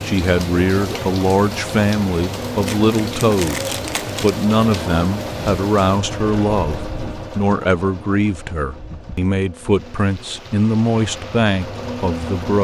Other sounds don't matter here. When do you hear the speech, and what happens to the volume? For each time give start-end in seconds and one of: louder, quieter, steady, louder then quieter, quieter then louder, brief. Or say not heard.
0.0-12.5 steady.